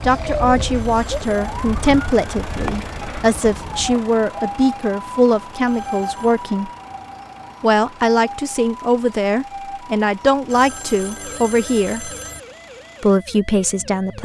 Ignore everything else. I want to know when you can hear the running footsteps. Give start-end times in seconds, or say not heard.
not heard.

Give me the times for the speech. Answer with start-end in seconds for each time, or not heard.
0.0-6.7, 7.6-12.1, 13.0-14.2.